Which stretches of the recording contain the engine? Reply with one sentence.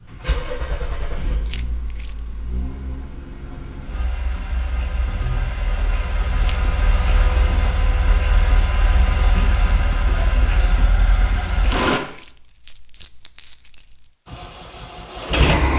The engine can be heard from 0.0 to 12.0 s and from 14.2 to 15.7 s.